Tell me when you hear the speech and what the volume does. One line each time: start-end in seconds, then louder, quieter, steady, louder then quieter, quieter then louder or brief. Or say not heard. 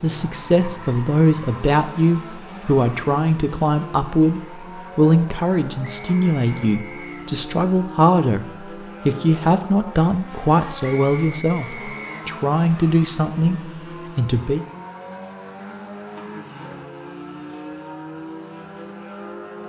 0.0-14.7 steady.